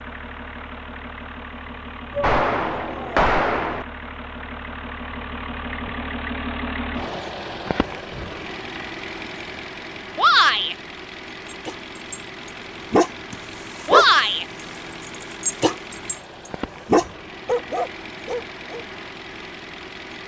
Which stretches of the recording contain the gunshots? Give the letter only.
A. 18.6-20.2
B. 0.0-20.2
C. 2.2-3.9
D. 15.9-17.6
C.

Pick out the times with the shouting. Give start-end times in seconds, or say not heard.
2.1-3.3, 10.2-10.8, 13.8-14.4.